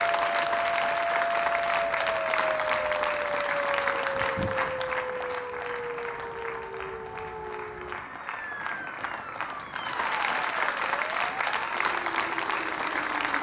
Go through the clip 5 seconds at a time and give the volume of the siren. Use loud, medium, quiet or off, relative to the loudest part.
loud, medium, medium.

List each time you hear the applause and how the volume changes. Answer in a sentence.
The applause can be heard from 0.0 to 13.3 s, getting quieter then louder.